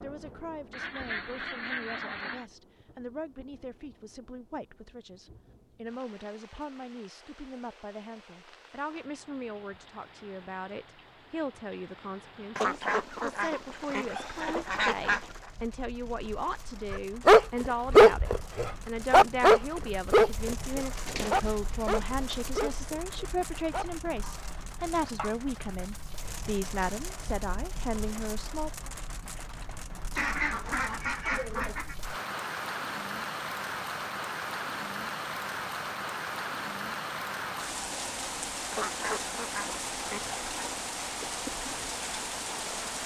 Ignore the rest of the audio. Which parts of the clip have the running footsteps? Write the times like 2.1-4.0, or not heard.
not heard.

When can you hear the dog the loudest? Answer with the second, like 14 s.
18 s.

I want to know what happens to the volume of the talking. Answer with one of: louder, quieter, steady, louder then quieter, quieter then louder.
louder.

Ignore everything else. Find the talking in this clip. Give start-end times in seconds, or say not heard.
0.0-28.9.